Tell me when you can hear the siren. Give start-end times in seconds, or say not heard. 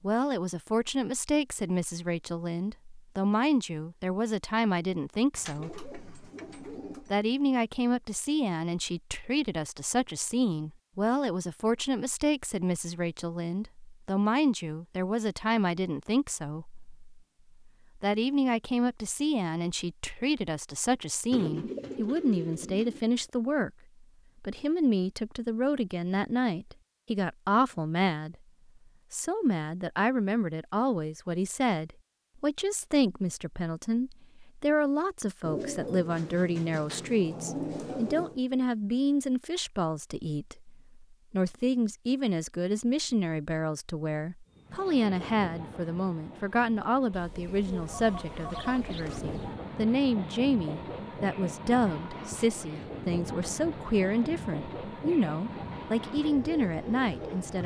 not heard.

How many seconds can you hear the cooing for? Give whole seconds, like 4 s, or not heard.
9 s.